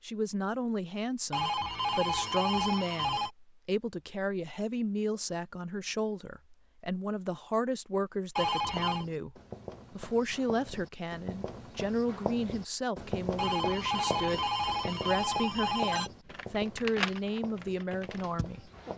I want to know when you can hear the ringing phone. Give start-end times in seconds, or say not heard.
1.3-3.3, 8.3-9.1, 13.3-16.1.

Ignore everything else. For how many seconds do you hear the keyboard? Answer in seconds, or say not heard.
3 s.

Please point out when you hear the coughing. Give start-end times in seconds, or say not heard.
not heard.